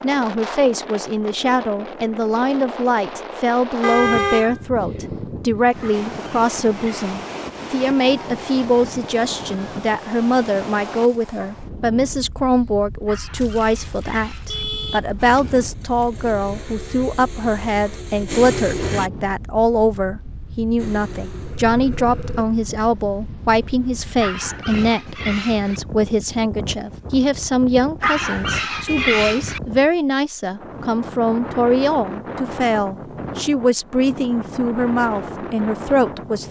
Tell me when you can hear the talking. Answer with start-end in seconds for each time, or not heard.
0.0-36.4.